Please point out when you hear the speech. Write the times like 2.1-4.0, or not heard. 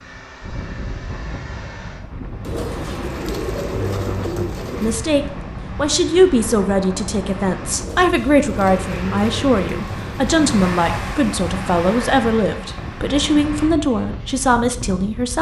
4.8-15.3.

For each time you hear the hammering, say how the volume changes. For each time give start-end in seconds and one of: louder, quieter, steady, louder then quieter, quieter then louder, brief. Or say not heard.
not heard.